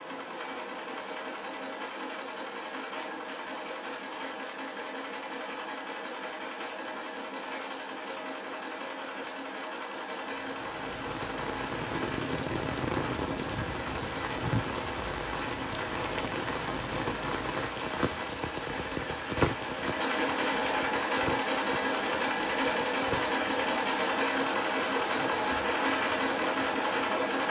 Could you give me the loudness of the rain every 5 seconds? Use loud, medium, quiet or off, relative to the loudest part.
off, off, loud, loud, medium, medium.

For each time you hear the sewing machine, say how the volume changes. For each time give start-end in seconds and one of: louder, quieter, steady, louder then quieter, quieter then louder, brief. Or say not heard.
0.0-27.4 louder.